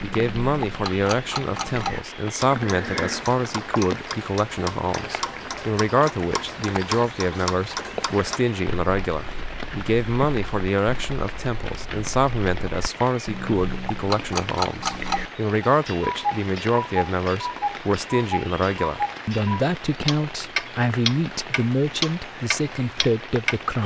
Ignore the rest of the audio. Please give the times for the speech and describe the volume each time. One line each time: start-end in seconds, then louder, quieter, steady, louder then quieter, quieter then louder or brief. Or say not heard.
0.0-23.8 steady.